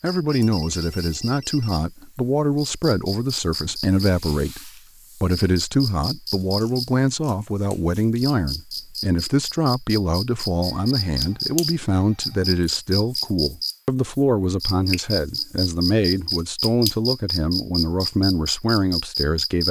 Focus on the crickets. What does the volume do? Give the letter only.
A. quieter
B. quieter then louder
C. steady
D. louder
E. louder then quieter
D.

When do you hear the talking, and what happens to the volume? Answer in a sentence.
You can hear the talking from 0.0 to 19.6 s, at a steady volume.